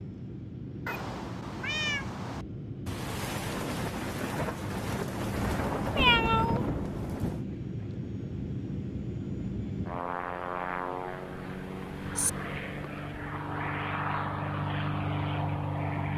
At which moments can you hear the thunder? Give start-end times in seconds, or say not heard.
2.9-7.5.